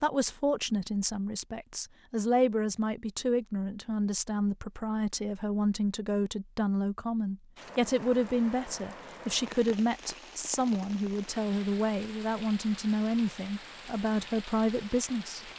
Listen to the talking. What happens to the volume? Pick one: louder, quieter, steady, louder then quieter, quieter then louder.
steady.